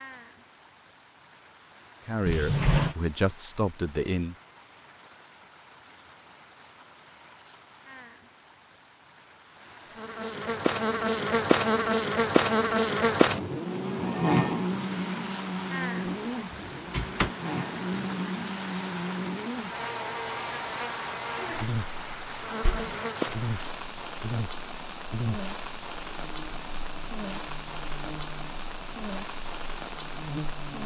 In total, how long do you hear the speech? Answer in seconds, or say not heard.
2 s.